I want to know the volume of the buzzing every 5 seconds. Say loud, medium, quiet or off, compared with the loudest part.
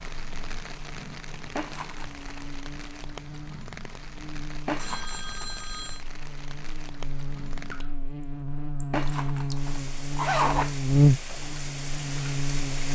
quiet, medium, loud.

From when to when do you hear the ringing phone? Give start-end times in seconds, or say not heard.
4.8-6.0.